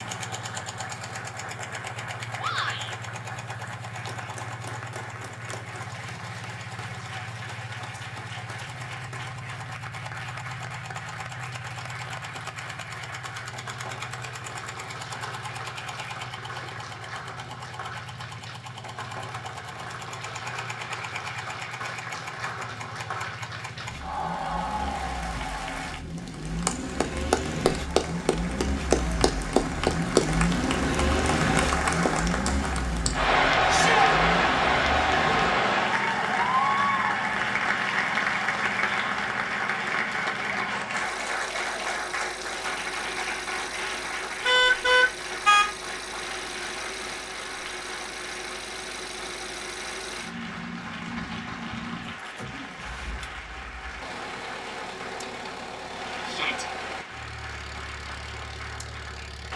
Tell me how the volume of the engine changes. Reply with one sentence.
The loudness of the engine goes up, then down.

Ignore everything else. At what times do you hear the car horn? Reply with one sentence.
The car horn can be heard from 44.5 to 45.6 s.